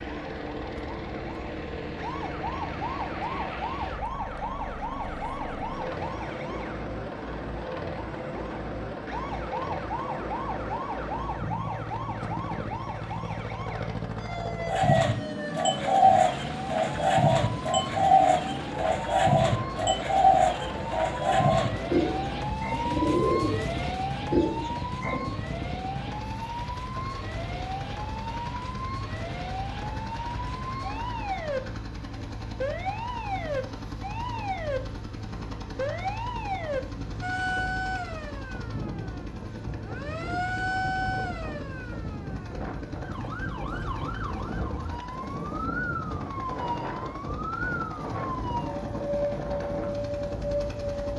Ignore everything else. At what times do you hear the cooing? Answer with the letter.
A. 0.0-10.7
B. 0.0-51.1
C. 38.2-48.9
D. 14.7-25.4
D.